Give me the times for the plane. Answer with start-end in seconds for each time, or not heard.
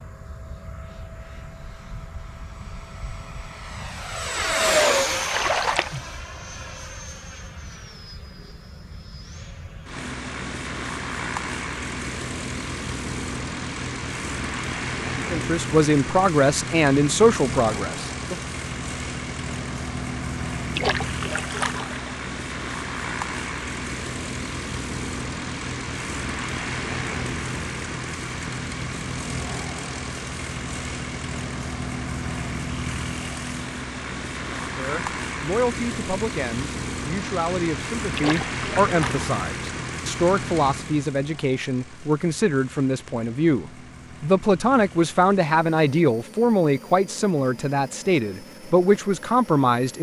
0.0-49.9.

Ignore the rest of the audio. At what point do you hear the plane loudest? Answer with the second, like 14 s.
5 s.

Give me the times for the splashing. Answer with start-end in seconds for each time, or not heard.
5.2-6.0, 20.8-22.1, 38.1-39.3.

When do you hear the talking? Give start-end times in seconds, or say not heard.
15.3-18.4, 34.5-49.9.